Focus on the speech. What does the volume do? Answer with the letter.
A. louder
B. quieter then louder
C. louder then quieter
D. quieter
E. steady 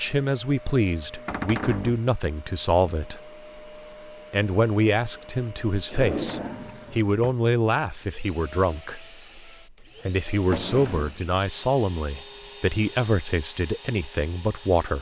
E.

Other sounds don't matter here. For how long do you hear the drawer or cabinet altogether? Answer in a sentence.
The drawer or cabinet can be heard for 3 seconds in total.